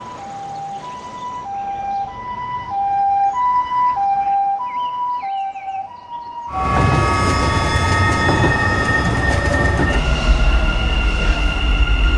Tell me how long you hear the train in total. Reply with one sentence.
The train can be heard for 6 seconds in total.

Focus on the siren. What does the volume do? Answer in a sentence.
The volume of the siren goes up, then down.